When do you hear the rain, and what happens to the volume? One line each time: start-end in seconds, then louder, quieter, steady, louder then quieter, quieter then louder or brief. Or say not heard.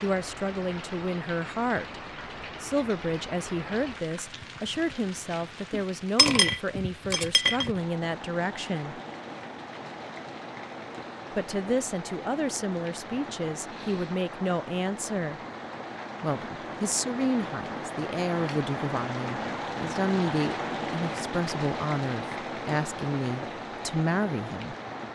0.0-25.0 louder.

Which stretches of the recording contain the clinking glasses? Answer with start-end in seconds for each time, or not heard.
5.7-7.7.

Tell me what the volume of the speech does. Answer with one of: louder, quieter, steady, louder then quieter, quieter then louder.
steady.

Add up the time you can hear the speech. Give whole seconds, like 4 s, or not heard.
22 s.